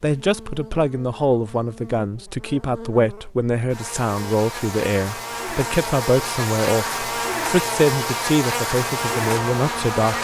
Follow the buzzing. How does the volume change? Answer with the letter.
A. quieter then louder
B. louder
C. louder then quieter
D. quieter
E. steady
B.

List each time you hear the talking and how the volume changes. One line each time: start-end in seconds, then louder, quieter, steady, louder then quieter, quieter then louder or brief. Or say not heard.
0.0-10.1 steady.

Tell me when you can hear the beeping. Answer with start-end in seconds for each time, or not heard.
not heard.